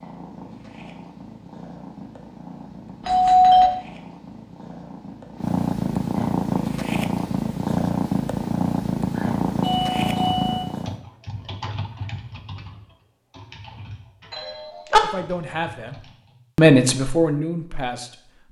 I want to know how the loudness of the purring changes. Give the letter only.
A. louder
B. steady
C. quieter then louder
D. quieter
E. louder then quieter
A.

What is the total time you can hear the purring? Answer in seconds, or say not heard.
11 s.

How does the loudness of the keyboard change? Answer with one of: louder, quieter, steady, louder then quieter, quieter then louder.
quieter.